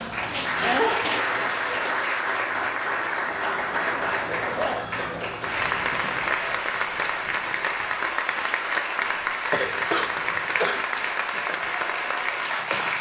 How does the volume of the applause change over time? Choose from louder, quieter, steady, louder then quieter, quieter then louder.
steady.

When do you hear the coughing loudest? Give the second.
1 s.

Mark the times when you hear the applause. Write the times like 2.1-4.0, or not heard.
0.0-12.9.